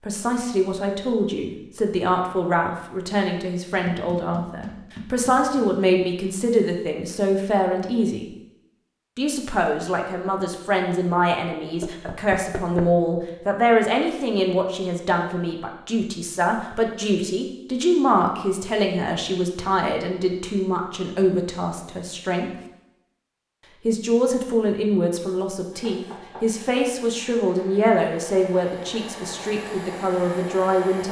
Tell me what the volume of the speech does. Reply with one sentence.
The volume of the speech stays about the same.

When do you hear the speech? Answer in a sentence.
The speech can be heard from 0.1 to 8.3 s, from 9.2 to 22.5 s and from 23.9 to 31.0 s.